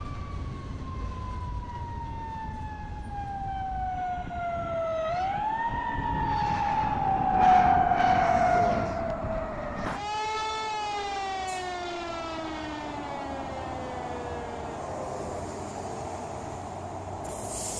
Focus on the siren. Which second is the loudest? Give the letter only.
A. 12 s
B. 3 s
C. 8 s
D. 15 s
C.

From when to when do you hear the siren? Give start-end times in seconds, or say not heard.
0.0-15.2.